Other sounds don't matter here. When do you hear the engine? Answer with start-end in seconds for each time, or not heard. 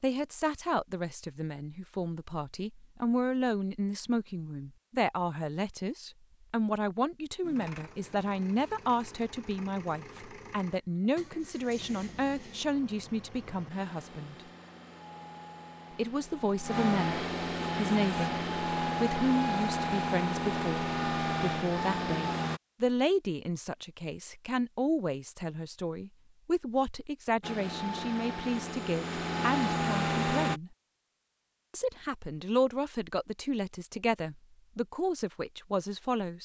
7.4-22.6, 27.4-30.6.